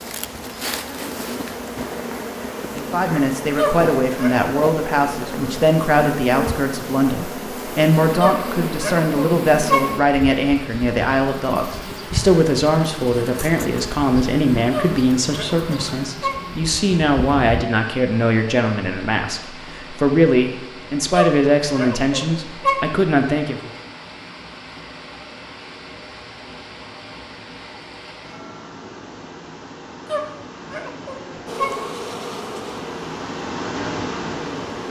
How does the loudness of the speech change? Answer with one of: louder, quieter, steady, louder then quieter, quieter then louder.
steady.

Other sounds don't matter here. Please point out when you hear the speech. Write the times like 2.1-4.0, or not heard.
2.7-23.7.